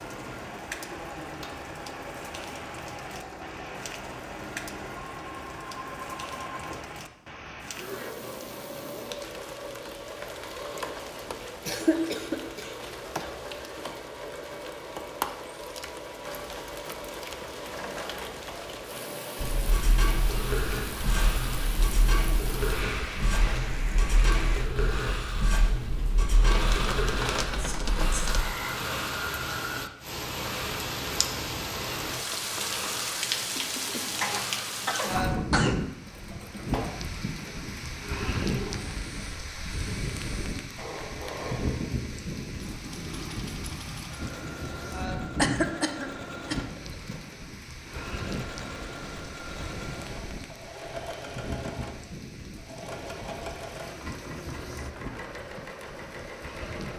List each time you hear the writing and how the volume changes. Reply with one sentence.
You can hear the writing from 19.4 to 28.4 s, at a steady volume.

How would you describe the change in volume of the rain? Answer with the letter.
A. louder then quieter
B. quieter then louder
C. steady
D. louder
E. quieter
A.